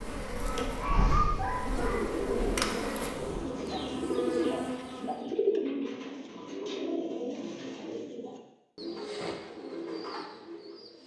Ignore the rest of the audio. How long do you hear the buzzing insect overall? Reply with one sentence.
You can hear the buzzing insect for 5 seconds altogether.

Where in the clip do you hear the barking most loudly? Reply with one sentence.
The volume of the barking peaks at 1 second.